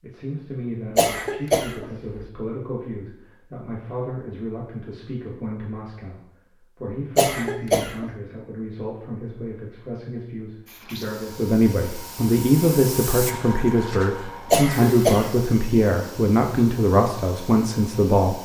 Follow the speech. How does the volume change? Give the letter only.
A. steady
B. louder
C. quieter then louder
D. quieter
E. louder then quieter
B.